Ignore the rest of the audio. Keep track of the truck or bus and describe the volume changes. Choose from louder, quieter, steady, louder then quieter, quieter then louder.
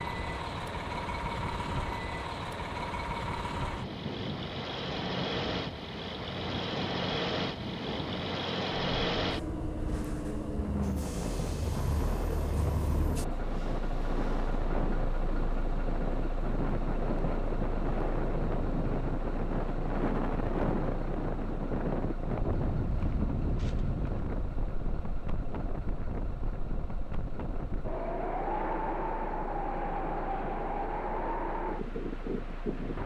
quieter.